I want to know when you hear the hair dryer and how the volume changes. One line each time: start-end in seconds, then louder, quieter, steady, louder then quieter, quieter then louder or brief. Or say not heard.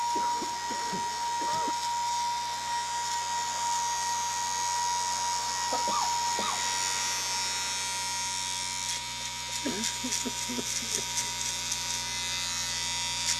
0.0-13.3 quieter.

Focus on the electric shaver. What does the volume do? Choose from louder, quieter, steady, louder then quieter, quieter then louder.
louder.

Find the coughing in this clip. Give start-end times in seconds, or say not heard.
0.1-1.8, 5.7-6.6, 9.6-11.3.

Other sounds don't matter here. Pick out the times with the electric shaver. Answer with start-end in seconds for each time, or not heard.
0.0-13.3.